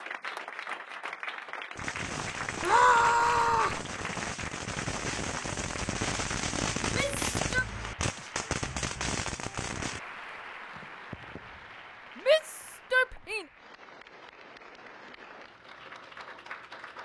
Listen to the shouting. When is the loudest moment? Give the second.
3 s.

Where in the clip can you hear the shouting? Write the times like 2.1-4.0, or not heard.
2.6-3.8, 6.8-7.7, 12.2-13.4.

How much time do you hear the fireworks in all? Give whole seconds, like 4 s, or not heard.
8 s.